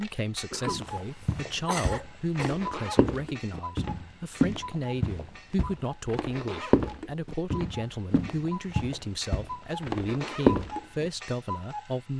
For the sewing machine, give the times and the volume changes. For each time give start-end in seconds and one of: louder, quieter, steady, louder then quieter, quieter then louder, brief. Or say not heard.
not heard.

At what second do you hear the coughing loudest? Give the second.
2 s.